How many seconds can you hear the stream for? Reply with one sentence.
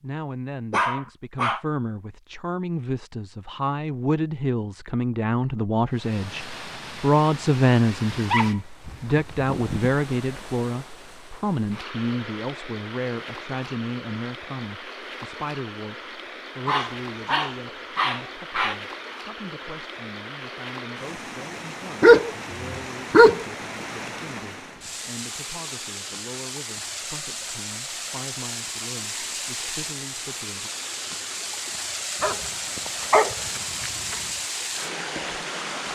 The stream can be heard for 30 seconds in total.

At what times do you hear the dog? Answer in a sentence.
The dog can be heard from 0.7 to 1.6 s, from 8.1 to 9.9 s, from 16.6 to 18.8 s, from 22.0 to 23.4 s and from 32.2 to 34.1 s.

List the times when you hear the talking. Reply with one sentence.
You can hear the talking from 0.0 to 30.7 s.